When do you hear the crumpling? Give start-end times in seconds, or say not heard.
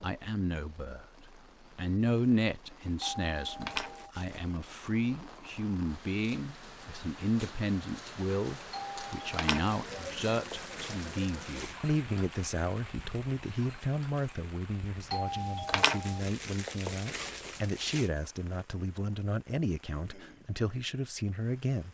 3.6-4.4, 9.3-11.8, 15.7-18.1.